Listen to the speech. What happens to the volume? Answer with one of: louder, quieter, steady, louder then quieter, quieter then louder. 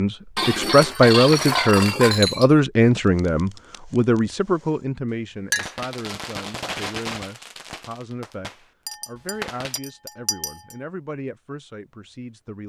quieter.